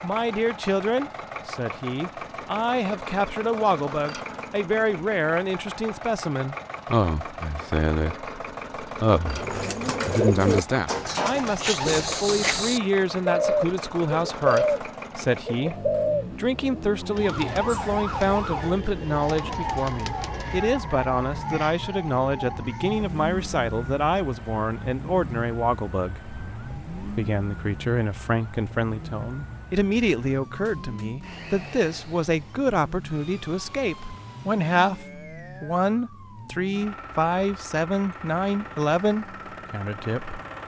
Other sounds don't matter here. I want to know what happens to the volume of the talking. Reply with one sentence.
The loudness of the talking stays about the same.